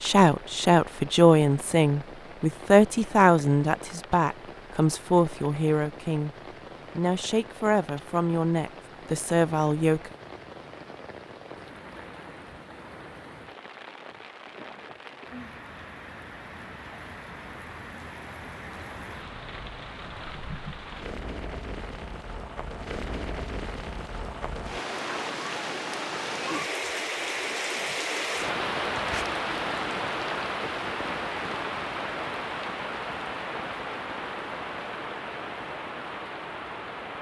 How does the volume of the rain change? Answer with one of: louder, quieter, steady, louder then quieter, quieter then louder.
louder.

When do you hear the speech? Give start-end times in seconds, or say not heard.
0.0-6.3, 7.0-10.1.